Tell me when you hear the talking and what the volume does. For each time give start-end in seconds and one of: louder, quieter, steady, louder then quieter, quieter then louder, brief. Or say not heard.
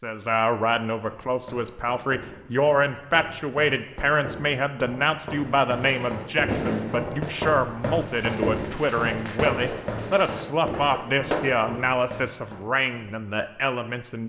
0.0-14.2 steady.